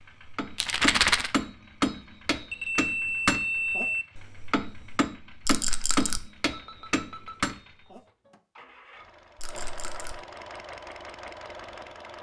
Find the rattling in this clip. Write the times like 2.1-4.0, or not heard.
0.6-1.3, 5.5-6.2, 9.3-10.2.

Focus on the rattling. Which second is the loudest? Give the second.
1 s.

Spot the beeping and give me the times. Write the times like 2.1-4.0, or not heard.
2.5-4.0, 6.5-7.5.